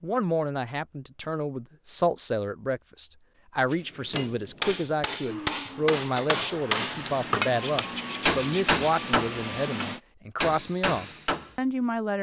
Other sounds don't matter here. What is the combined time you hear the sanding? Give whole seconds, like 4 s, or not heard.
2 s.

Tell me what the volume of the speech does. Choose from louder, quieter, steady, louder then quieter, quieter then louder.
steady.